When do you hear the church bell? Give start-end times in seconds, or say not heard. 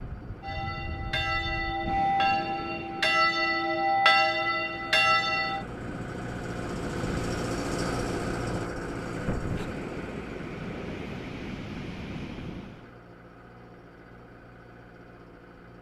0.4-5.7.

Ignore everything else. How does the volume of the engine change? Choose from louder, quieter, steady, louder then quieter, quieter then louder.
louder then quieter.